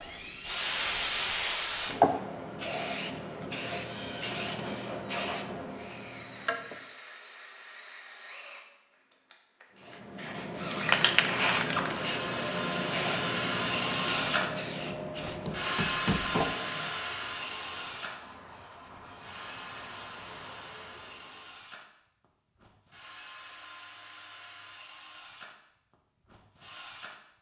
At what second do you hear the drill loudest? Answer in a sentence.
The loudest moment of the drill is at 14 seconds.